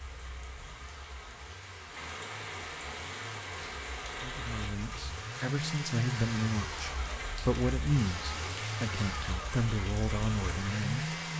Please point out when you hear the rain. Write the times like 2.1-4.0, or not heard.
0.0-11.3.